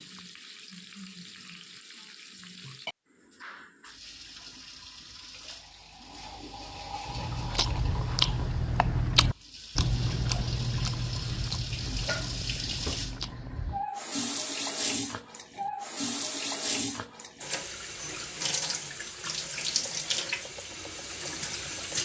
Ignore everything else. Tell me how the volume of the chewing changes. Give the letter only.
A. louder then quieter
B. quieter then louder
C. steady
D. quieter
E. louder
D.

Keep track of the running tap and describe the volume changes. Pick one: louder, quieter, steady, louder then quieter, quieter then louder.
louder.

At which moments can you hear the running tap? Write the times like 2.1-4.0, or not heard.
0.0-22.0.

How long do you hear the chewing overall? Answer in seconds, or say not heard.
7 s.